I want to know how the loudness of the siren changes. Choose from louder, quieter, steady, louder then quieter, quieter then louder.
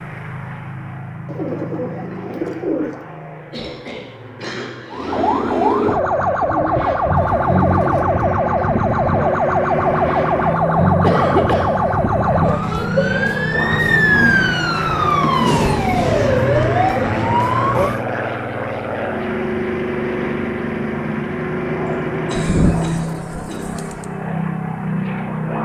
steady.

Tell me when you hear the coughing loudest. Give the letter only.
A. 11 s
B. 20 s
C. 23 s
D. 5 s
A.